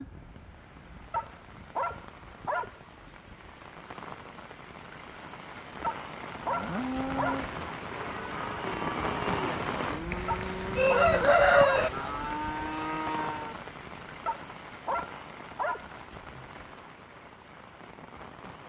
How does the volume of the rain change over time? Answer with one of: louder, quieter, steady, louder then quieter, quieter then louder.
louder then quieter.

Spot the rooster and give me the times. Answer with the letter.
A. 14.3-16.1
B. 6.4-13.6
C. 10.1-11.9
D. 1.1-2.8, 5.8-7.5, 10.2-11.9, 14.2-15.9
C.